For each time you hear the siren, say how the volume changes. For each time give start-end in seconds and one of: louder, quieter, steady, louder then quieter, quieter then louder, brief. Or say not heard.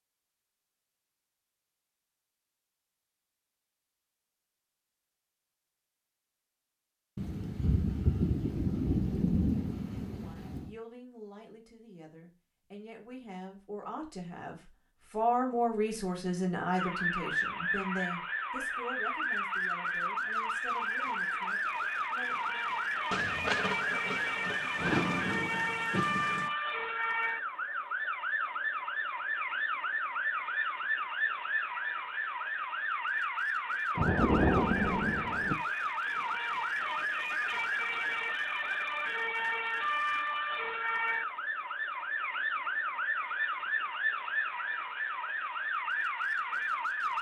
16.8-47.1 steady.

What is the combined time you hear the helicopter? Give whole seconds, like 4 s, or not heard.
not heard.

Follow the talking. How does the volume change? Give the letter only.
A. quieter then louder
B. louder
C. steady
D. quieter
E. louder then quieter
E.